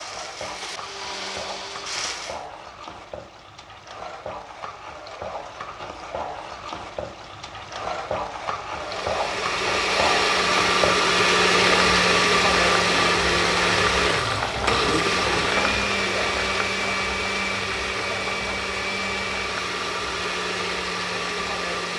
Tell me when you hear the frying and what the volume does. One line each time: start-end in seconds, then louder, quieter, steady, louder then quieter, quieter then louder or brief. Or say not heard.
0.0-21.6 louder then quieter.